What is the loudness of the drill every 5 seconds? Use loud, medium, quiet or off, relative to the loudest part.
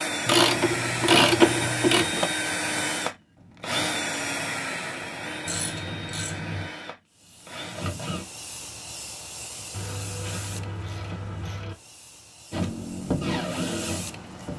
loud, medium, loud.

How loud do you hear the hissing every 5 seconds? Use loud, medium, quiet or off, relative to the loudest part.
off, loud, loud.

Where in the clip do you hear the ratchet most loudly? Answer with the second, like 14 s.
1 s.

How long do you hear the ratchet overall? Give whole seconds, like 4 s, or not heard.
5 s.